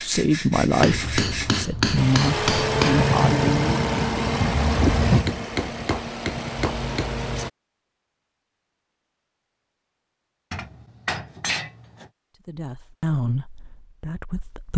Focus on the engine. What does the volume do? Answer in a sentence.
The loudness of the engine goes down.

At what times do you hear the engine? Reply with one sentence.
You can hear the engine from 1.9 to 7.5 s.